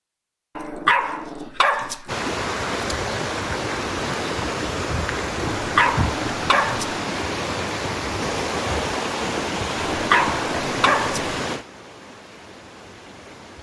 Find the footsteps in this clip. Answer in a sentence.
The footsteps can't be heard in this clip.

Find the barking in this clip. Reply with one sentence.
The barking can be heard from 0.6 to 2.1 s, from 5.5 to 7.0 s and from 9.9 to 11.2 s.